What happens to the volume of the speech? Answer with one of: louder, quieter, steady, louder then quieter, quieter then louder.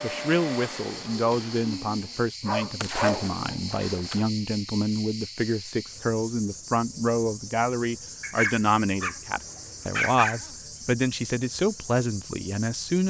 steady.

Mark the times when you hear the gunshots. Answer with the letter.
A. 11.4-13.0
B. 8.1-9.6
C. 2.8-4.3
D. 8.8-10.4
C.